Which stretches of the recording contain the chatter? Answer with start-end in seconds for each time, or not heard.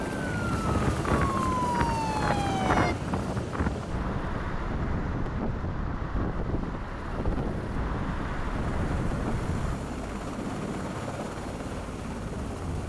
not heard.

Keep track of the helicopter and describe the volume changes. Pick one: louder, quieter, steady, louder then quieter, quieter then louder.
quieter then louder.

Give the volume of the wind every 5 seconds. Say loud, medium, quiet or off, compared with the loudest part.
loud, loud, off.